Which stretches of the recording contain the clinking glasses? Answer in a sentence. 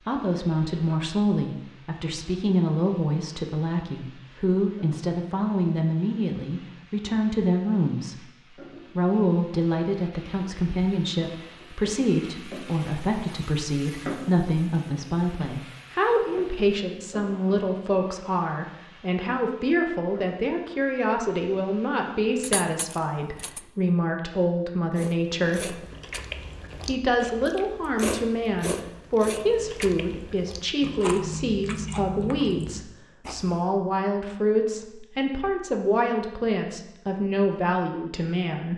The clinking glasses can be heard from 22.4 to 23.6 s.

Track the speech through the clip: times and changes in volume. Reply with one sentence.
You can hear the speech from 0.1 to 25.8 s, at a steady volume; and from 26.8 to 38.7 s, at a steady volume.